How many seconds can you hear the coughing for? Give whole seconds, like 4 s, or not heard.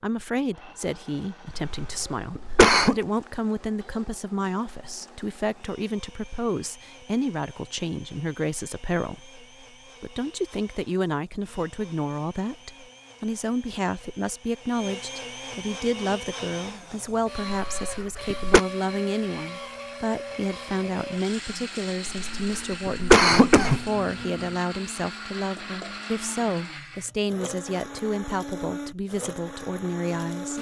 4 s.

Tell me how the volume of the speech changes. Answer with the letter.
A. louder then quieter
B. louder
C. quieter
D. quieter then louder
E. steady
E.